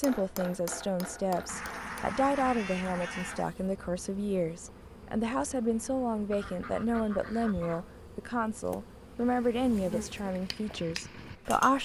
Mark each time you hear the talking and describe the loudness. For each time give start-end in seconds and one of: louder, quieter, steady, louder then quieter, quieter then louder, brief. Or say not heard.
0.0-11.8 steady.